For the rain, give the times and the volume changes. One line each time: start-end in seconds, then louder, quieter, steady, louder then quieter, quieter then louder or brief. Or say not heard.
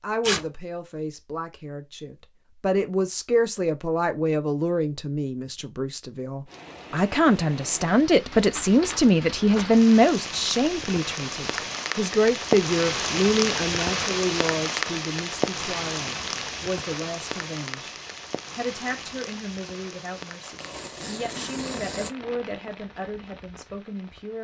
6.5-24.3 louder then quieter.